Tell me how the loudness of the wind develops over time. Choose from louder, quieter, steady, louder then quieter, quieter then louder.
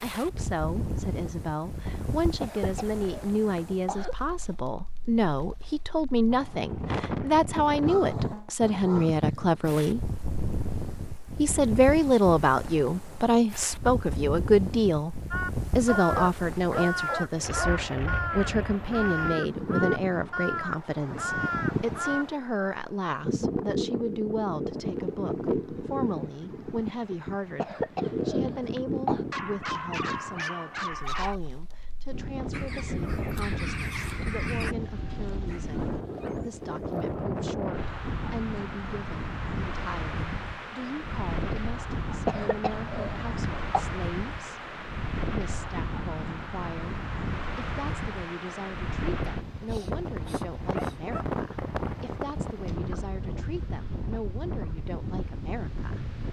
steady.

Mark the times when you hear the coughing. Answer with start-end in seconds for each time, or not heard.
2.4-4.2, 27.6-29.2, 42.2-43.9.